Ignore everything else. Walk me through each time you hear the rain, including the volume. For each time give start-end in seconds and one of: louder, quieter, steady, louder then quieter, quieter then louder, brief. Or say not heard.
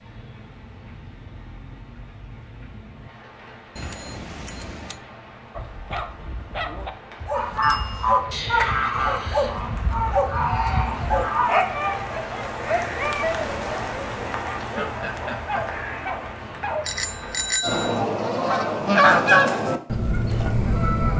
0.0-17.6 louder.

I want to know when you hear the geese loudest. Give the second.
19 s.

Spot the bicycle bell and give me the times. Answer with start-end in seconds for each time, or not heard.
3.8-5.0, 7.6-8.1, 16.9-18.1.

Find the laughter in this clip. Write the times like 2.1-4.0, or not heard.
14.5-15.8.